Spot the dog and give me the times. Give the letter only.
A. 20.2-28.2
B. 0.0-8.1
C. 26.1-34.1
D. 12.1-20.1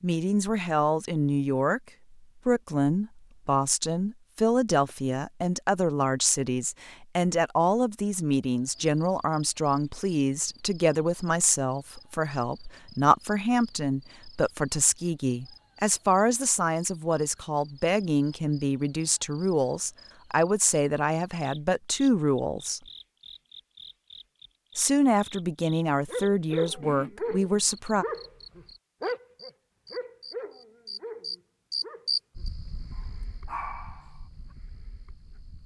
C.